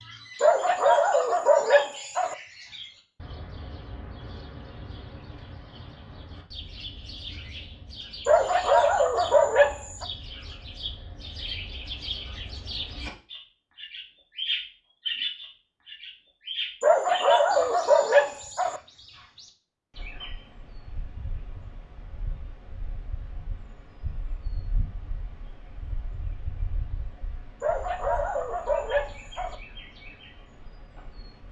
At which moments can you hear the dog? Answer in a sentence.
The dog can be heard from 0.4 to 2.4 s, from 8.2 to 10.1 s, from 16.8 to 18.8 s and from 27.6 to 29.6 s.